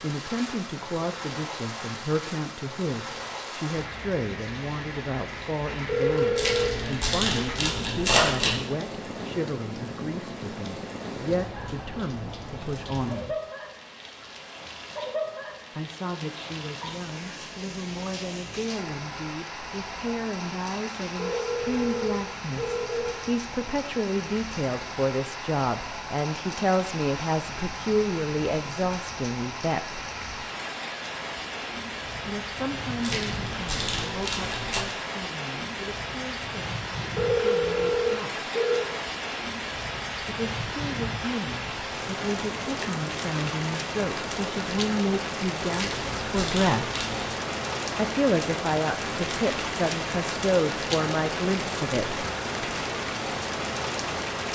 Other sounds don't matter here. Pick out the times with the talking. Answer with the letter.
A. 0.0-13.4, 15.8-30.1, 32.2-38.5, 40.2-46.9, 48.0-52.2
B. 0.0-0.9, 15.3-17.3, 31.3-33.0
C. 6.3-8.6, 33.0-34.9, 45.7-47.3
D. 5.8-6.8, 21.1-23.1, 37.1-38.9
A.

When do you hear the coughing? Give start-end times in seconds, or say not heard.
not heard.